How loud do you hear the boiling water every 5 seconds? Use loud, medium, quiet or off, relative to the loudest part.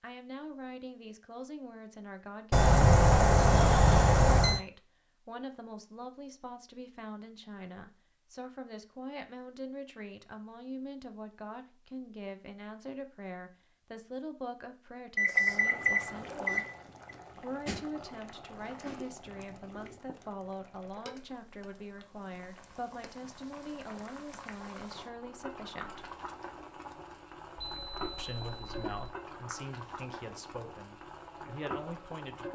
off, off, off, loud, medium, loud, loud.